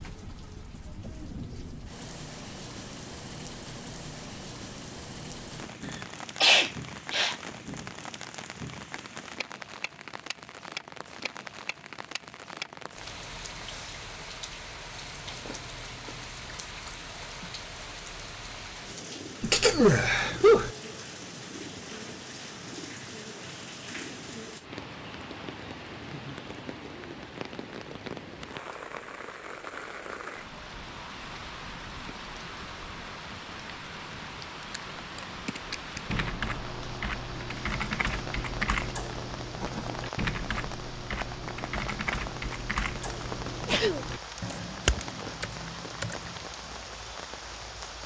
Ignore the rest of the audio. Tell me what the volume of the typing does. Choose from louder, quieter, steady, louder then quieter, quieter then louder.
steady.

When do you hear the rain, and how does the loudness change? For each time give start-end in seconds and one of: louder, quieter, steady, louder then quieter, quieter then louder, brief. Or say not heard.
0.0-48.0 steady.